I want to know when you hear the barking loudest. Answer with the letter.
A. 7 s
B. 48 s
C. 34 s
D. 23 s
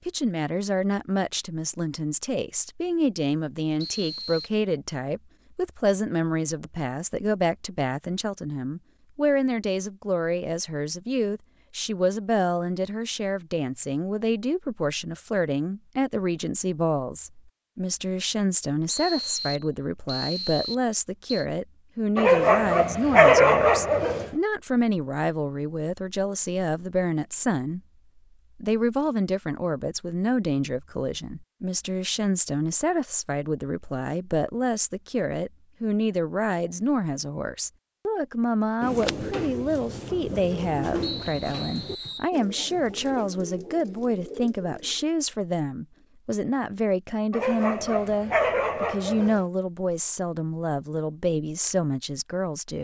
D.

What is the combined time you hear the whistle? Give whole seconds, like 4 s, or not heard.
5 s.